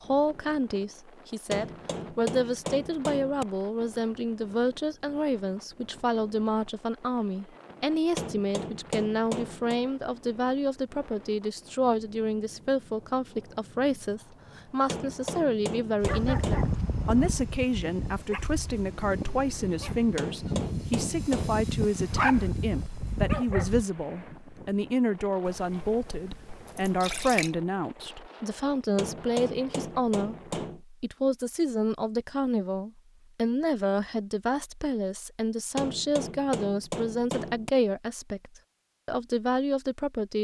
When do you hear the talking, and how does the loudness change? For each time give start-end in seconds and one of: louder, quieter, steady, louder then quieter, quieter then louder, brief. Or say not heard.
0.0-40.3 steady.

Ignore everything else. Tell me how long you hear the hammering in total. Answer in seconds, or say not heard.
11 s.